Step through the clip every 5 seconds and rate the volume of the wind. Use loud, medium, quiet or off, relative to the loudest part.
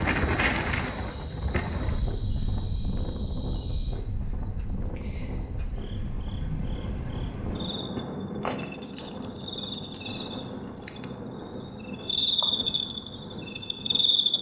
loud, medium, medium.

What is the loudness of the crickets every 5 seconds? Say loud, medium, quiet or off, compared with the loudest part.
quiet, medium, loud.